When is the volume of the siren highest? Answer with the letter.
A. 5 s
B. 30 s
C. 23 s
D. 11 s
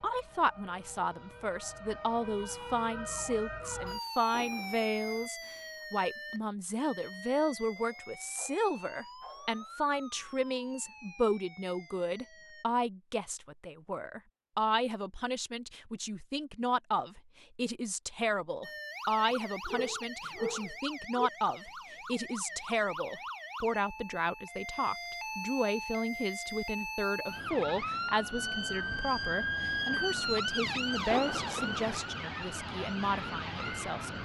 B.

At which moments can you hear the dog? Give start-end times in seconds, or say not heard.
7.8-9.8, 19.2-21.3.